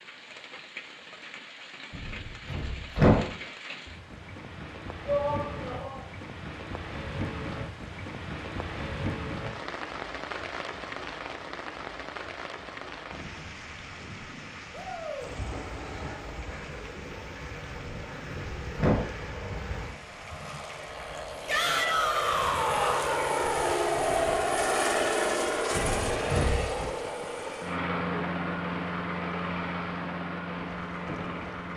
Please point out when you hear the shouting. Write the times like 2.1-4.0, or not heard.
5.0-6.0, 14.7-15.3, 21.4-23.1.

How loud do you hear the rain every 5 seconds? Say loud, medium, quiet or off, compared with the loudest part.
medium, loud, loud, medium, medium, medium, medium.